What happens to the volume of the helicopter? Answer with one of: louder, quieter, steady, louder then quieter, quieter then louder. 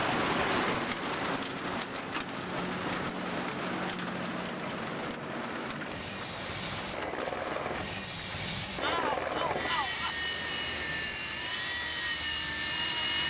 louder.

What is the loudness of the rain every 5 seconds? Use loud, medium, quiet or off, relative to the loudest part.
loud, medium, quiet.